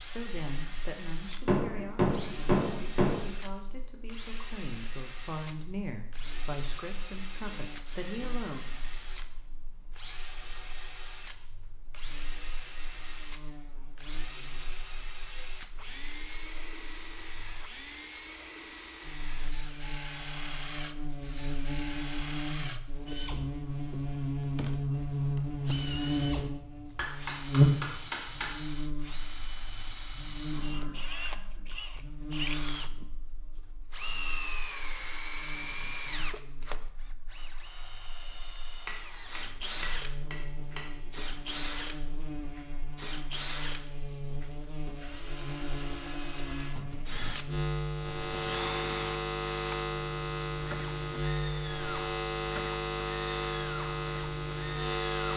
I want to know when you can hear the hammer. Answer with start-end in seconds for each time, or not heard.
1.4-3.2, 26.9-28.5, 38.9-40.8.